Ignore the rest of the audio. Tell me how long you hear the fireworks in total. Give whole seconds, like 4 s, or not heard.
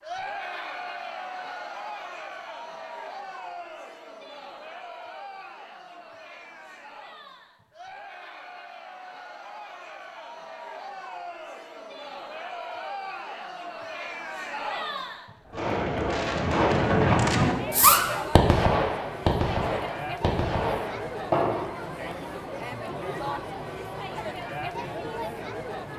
6 s.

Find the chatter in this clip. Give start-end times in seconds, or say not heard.
0.0-25.9.